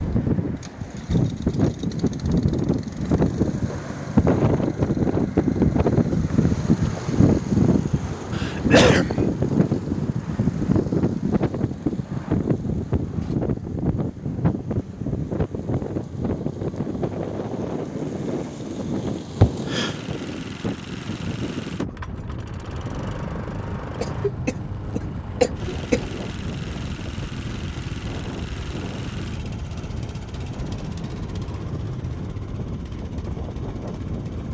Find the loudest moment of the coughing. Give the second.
9 s.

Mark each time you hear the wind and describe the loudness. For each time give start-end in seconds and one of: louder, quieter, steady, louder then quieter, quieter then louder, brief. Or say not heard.
0.0-34.4 quieter.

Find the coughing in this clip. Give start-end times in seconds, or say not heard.
8.3-9.2, 19.4-19.9, 24.0-26.1.